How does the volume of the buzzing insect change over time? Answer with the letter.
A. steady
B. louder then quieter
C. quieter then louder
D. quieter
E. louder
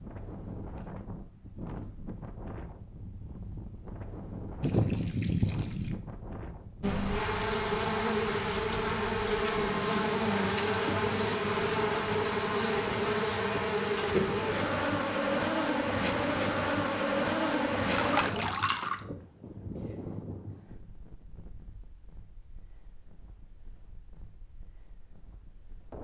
A.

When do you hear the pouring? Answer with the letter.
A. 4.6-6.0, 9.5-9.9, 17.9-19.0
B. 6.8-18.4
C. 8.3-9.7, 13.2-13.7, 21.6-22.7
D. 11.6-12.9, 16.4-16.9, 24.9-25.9
A.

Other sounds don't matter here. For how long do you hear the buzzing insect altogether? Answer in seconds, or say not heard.
12 s.